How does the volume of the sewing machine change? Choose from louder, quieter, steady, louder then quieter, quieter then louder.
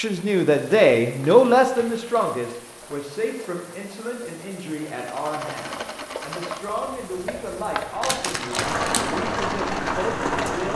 steady.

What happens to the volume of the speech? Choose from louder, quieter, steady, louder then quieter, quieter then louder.
quieter.